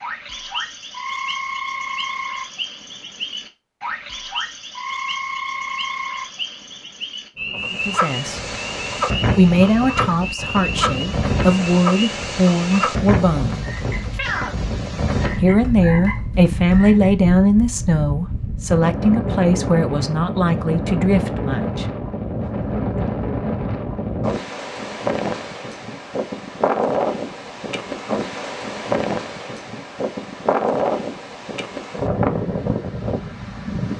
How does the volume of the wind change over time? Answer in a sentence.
The volume of the wind stays about the same.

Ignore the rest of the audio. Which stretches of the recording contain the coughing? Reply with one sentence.
The coughing can't be heard in this clip.